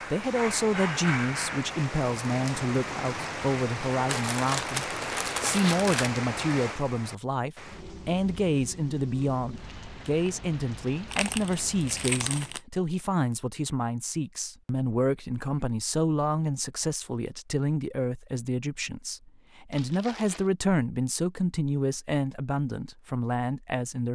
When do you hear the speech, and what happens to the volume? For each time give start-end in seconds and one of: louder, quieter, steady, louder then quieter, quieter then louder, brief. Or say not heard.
0.1-24.1 steady.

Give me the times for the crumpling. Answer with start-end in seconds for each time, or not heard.
4.0-6.1, 11.1-12.6, 19.7-20.5.